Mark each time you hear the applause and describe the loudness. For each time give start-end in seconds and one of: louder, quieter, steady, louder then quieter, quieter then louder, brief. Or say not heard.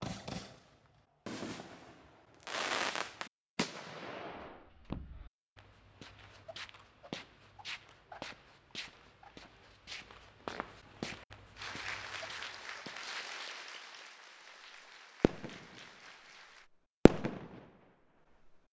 11.6-16.7 quieter.